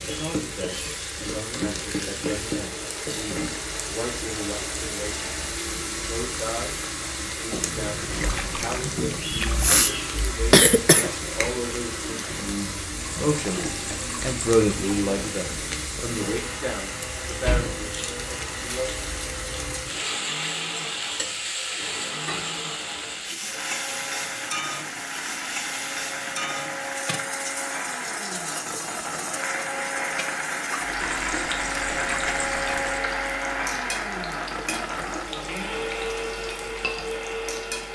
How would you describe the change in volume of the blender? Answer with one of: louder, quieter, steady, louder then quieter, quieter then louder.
louder.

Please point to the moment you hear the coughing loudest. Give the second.
11 s.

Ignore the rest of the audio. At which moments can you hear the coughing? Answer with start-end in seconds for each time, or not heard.
9.3-11.1.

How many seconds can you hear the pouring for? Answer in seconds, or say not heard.
6 s.